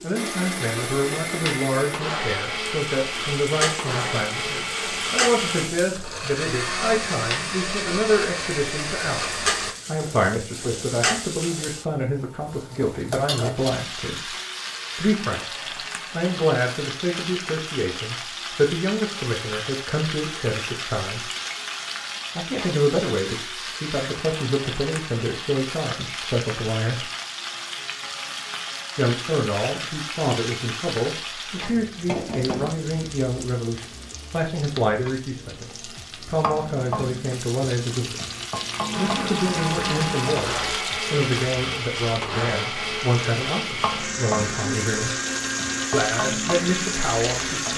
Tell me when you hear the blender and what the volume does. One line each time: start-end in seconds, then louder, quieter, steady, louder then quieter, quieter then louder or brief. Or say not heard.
0.0-9.8 steady
38.9-47.7 steady.